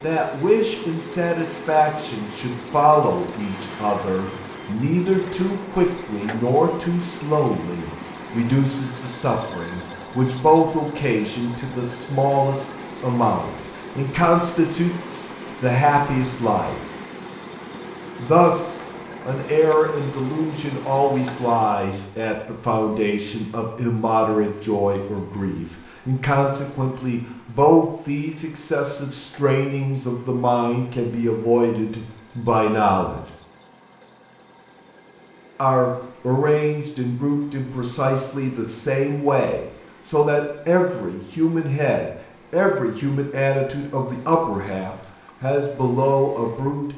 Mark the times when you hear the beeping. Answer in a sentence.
The beeping can be heard from 3.4 to 4.8 s.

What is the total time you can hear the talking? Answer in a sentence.
The talking can be heard for 43 seconds in total.